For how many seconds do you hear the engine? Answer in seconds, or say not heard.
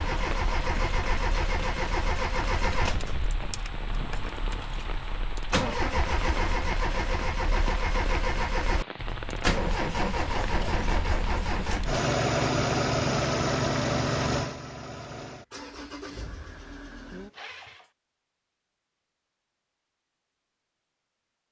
18 s.